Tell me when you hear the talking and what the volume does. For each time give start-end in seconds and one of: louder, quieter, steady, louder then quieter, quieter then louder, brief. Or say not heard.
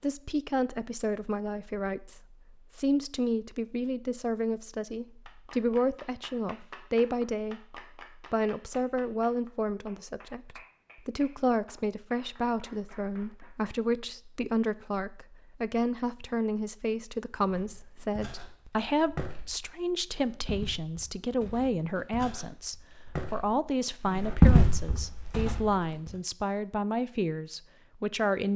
0.0-28.5 steady.